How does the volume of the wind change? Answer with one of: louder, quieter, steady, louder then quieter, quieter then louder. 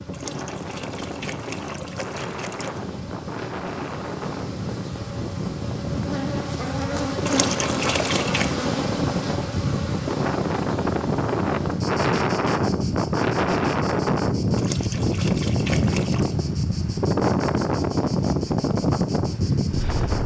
louder.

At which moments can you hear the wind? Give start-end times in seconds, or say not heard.
0.0-20.2.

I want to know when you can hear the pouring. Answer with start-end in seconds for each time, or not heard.
0.1-2.8, 7.2-8.5, 14.6-16.4.